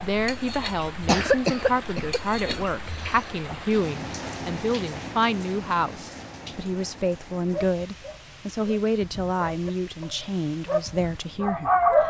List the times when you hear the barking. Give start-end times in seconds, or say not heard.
7.5-12.0.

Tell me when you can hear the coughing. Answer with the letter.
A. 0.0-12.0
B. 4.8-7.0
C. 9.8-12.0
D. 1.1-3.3
D.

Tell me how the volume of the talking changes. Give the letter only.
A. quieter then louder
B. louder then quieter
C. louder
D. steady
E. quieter
D.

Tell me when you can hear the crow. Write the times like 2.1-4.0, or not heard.
not heard.